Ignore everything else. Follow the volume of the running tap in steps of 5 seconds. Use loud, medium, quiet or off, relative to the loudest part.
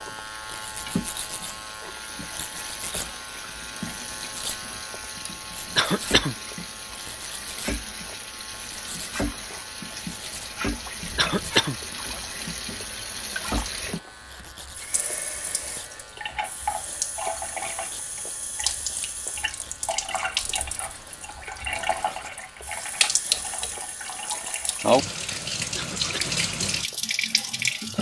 medium, medium, medium, medium, loud, loud.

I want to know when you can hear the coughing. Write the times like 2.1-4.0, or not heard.
5.8-6.3, 11.2-11.8, 25.8-26.4.